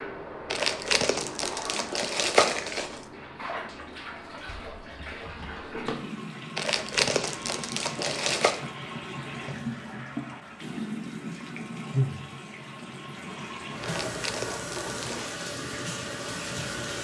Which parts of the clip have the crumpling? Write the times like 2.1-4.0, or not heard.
0.5-3.0, 6.5-8.6, 13.8-15.3.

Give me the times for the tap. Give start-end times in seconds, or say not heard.
0.0-16.9.